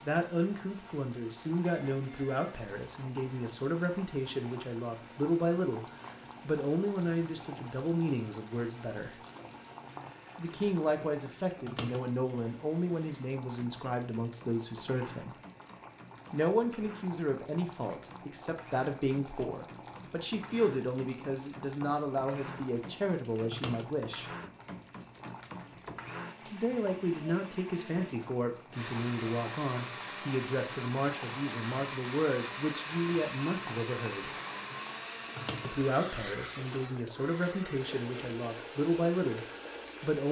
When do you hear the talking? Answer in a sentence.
You can hear the talking from 0.0 to 9.2 s, from 10.3 to 15.3 s, from 16.3 to 24.3 s, from 26.4 to 34.3 s and from 35.6 to 40.2 s.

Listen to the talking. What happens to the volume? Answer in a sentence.
The loudness of the talking stays about the same.